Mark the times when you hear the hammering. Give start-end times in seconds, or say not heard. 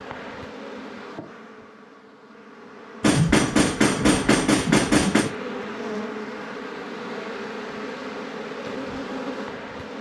3.0-5.3.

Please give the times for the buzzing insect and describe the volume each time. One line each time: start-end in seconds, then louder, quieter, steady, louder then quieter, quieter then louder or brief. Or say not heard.
0.0-9.9 louder.